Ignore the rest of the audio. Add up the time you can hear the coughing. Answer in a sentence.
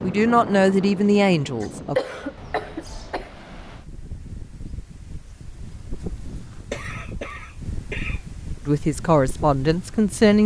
You can hear the coughing for 4 seconds altogether.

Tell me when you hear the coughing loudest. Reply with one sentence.
The volume of the coughing peaks at 2 seconds.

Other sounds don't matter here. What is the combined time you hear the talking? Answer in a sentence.
You can hear the talking for 4 seconds altogether.